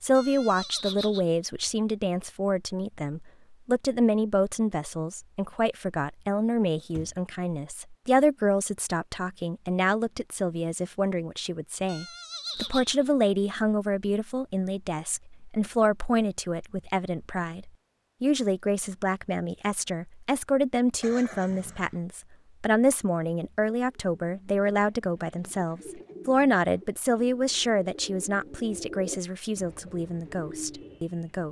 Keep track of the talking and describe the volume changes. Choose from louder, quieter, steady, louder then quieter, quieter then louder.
steady.